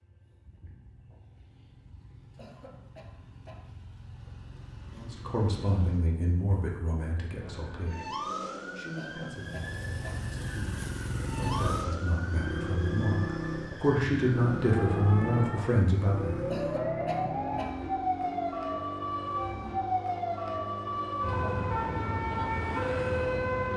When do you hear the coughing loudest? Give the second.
17 s.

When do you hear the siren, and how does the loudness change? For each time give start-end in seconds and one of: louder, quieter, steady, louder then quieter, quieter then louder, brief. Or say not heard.
7.3-23.7 louder.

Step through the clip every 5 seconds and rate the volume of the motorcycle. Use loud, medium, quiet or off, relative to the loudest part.
quiet, medium, loud, loud, medium.